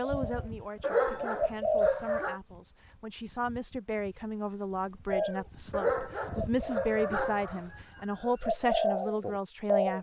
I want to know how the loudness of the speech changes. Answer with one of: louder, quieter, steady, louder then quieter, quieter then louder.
louder.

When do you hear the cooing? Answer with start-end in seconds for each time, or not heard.
0.0-1.9, 5.0-9.9.